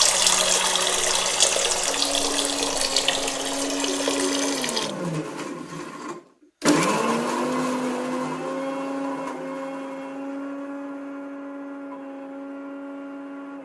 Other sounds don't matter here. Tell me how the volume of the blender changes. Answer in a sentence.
The loudness of the blender goes up, then down.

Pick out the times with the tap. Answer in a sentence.
You can hear the tap from 0.0 to 5.0 s.